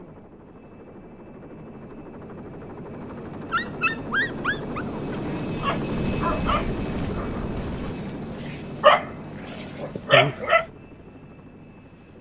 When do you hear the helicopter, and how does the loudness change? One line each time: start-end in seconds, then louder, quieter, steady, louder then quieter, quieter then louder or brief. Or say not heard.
0.0-12.1 louder then quieter.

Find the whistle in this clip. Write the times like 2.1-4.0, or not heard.
not heard.